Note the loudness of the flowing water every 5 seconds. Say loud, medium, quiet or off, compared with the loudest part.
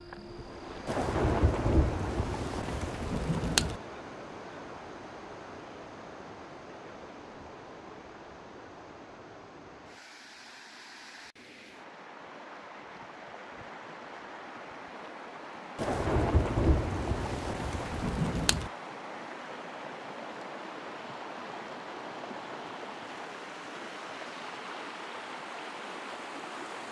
loud, medium, medium, loud, loud, loud.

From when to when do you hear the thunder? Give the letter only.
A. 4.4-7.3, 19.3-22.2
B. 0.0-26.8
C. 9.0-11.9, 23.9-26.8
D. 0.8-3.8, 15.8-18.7
D.